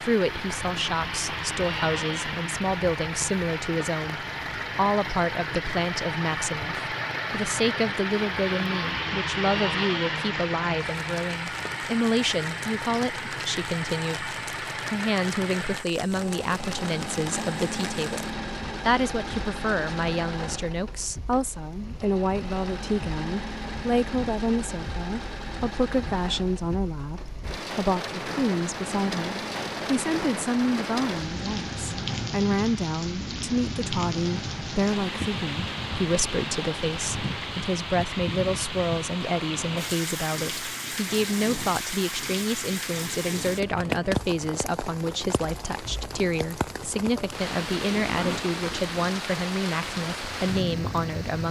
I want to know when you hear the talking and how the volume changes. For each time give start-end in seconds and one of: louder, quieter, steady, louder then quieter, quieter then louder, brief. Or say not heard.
0.0-51.4 steady.